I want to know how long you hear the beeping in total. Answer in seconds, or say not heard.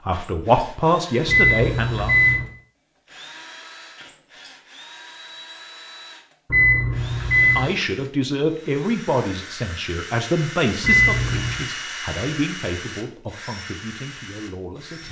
3 s.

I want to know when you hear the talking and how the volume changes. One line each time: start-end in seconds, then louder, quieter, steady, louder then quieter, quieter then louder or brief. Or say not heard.
0.1-2.1 brief
7.4-15.0 quieter.